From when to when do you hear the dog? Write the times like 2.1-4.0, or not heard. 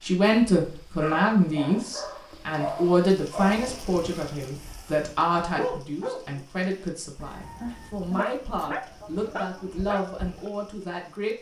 0.2-10.5.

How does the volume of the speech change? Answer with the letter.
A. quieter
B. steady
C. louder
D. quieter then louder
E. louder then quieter
A.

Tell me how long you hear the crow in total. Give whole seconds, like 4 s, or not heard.
not heard.